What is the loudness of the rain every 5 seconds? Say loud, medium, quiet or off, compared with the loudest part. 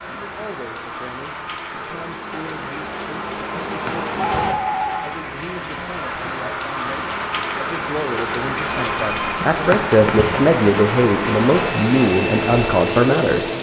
medium, loud, loud.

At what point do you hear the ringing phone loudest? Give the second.
5 s.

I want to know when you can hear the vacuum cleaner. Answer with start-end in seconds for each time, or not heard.
1.7-4.5, 6.9-13.5.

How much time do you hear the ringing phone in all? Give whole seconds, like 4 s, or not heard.
2 s.